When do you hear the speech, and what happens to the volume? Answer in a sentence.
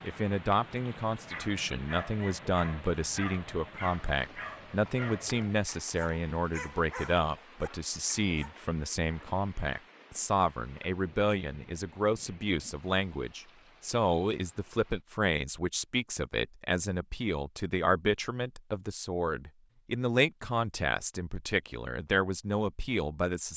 You can hear the speech from 0.0 to 23.5 s, at a steady volume.